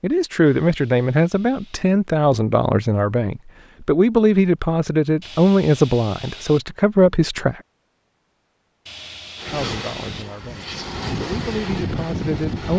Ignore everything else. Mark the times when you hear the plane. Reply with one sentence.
You can hear the plane from 9.3 to 12.7 s.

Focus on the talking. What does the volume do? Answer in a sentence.
The volume of the talking goes down.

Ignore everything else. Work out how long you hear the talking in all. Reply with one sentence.
The talking can be heard for 11 seconds in total.